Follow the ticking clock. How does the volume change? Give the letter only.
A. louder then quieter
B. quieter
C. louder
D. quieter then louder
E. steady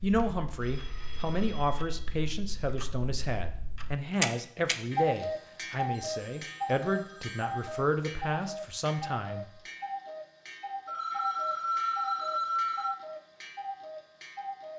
A.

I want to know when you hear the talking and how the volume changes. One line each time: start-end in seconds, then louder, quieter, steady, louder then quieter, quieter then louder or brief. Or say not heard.
0.0-9.6 steady.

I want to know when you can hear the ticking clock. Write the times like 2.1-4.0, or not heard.
0.0-14.7.